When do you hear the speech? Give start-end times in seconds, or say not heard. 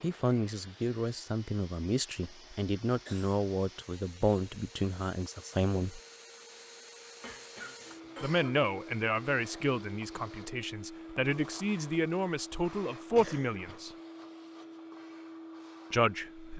0.0-6.0, 8.2-13.9, 15.9-16.5.